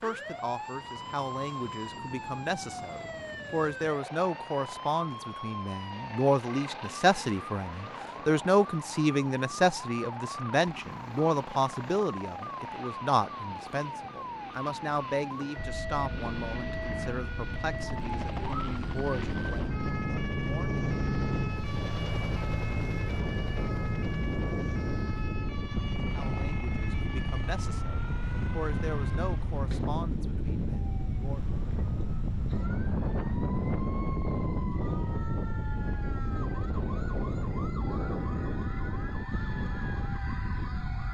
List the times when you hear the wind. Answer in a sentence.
You can hear the wind from 15.6 to 41.0 s.